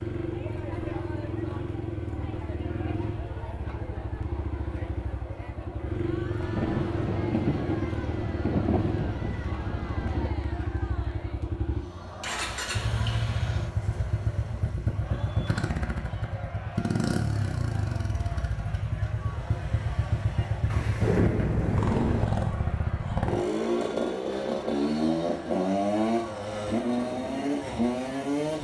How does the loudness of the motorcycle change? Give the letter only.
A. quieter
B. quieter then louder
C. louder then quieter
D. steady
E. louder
E.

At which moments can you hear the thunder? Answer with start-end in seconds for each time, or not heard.
6.4-10.3, 20.7-22.2.